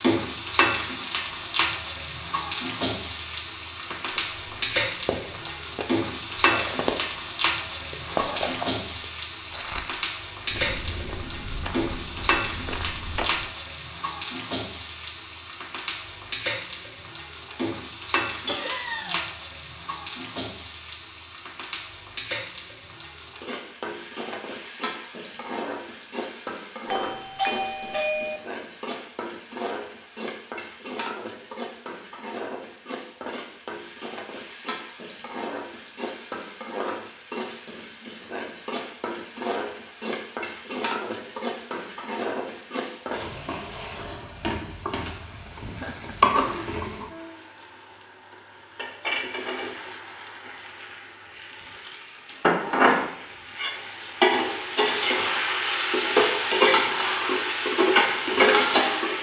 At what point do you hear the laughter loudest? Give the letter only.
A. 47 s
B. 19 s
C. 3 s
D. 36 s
B.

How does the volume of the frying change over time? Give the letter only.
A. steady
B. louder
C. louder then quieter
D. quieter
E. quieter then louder
E.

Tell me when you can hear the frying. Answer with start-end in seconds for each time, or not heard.
0.0-59.1.